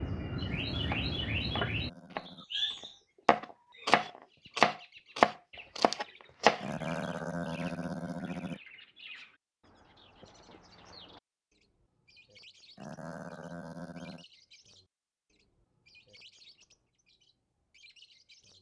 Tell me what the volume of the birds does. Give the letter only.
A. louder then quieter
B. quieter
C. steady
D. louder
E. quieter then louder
B.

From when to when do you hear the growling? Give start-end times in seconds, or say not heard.
0.5-2.5, 6.6-8.6, 12.8-14.2.